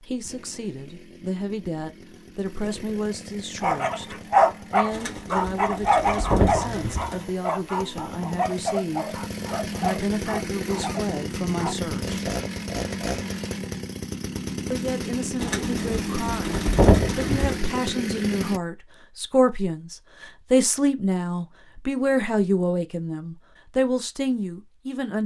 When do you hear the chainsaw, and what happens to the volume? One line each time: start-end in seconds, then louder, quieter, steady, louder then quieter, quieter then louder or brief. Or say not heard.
0.0-18.6 louder.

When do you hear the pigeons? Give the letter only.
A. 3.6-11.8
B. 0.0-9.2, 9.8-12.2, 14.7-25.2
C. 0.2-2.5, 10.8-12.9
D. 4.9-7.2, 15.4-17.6
D.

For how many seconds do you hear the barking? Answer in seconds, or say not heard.
8 s.